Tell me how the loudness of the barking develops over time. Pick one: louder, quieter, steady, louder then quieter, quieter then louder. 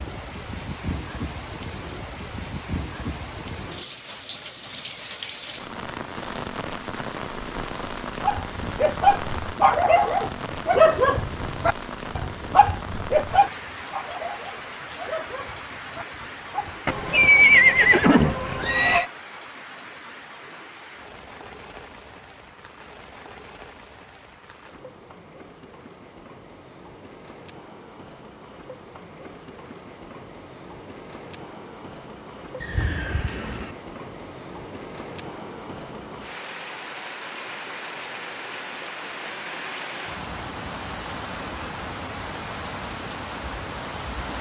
quieter.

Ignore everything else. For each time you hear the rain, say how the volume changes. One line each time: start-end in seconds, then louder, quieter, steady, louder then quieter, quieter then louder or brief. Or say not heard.
0.0-44.3 quieter then louder.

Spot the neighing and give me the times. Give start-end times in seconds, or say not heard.
16.9-19.1, 32.6-33.8.